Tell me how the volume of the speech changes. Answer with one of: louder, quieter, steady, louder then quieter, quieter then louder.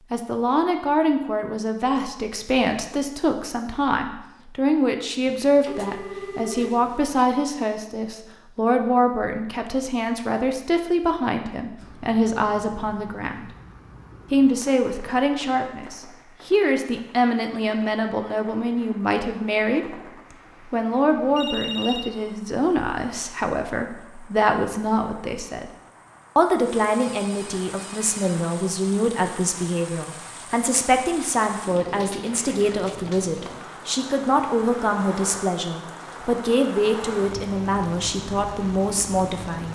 steady.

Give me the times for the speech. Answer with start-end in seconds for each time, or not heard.
0.1-13.5, 14.3-19.9, 20.7-25.7, 26.4-39.7.